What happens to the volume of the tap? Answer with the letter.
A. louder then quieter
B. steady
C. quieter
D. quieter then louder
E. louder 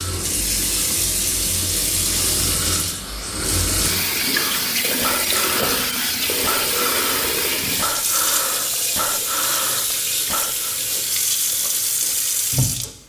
B.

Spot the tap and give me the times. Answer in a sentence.
You can hear the tap from 0.0 to 13.0 s.